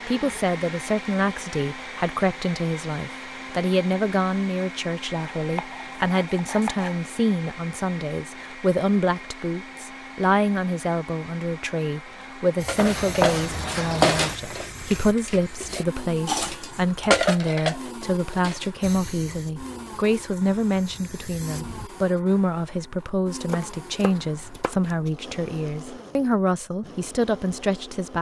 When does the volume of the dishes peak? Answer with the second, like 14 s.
17 s.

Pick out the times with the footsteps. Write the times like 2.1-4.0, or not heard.
not heard.